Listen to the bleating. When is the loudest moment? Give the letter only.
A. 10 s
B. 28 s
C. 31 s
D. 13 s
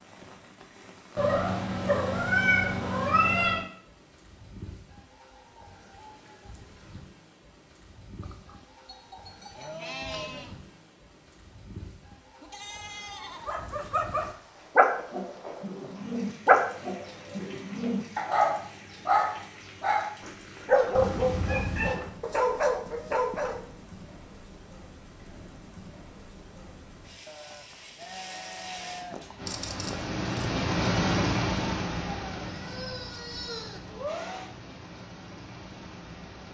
A.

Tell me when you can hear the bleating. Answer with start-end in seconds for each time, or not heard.
8.2-10.6, 12.4-13.6, 27.2-29.2.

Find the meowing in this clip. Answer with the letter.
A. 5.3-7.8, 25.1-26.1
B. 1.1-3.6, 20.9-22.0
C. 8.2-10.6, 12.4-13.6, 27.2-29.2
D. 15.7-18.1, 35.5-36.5
B.